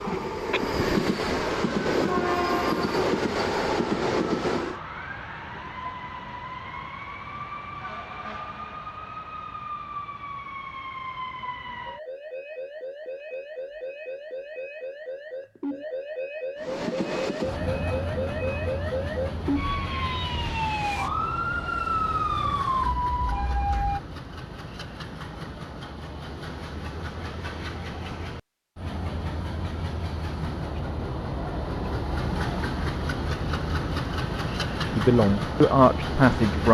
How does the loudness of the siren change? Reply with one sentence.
The loudness of the siren goes up.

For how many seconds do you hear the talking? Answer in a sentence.
You can hear the talking for 2 seconds altogether.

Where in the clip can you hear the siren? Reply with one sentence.
You can hear the siren from 0.0 to 24.0 s.